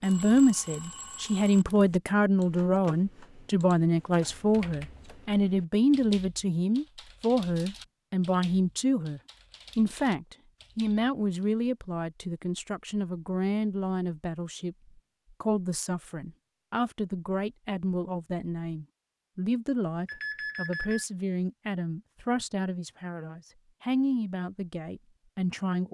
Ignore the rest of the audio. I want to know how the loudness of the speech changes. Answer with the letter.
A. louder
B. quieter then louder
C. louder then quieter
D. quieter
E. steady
D.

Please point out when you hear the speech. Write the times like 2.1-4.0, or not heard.
0.0-25.8.